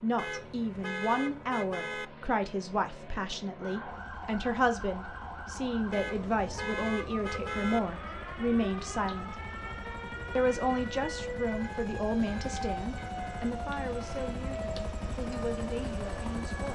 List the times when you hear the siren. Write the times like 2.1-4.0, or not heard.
3.6-16.7.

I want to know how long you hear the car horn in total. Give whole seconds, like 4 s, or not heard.
6 s.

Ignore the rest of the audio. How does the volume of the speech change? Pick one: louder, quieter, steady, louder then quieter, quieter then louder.
quieter.